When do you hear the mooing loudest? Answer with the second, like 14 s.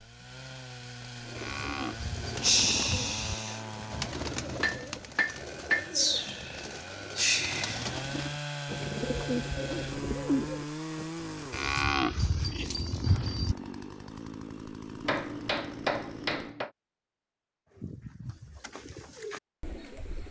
12 s.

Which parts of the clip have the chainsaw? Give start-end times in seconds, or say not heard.
0.0-16.6.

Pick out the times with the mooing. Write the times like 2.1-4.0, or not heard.
1.4-3.4, 11.5-13.6.